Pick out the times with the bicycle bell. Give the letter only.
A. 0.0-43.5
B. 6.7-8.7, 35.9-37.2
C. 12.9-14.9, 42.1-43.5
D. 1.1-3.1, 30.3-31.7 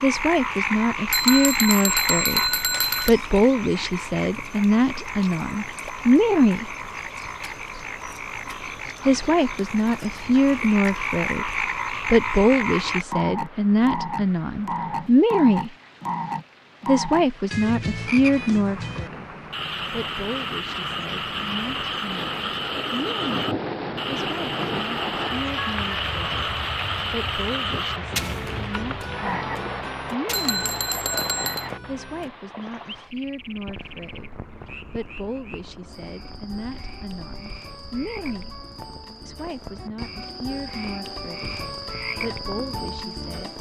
D.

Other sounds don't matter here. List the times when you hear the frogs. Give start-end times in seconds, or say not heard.
0.0-43.5.